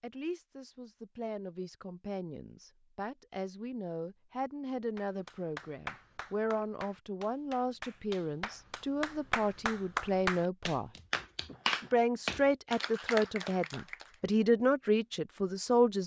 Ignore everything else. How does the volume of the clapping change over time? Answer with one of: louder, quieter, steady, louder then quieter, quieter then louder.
louder.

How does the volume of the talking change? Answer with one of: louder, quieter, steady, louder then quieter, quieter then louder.
louder.